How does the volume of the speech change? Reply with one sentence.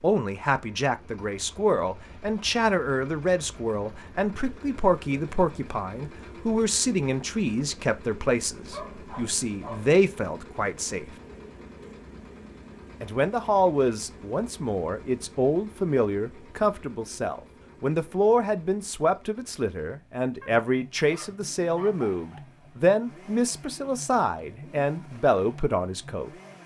The volume of the speech stays about the same.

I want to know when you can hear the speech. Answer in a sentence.
You can hear the speech from 0.0 to 11.1 s and from 13.0 to 26.3 s.